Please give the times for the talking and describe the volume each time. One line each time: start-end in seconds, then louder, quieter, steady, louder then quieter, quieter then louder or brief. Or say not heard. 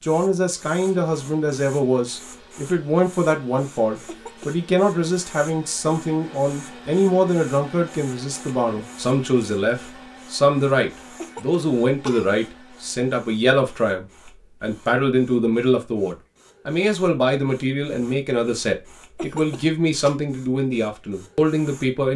0.0-22.1 steady.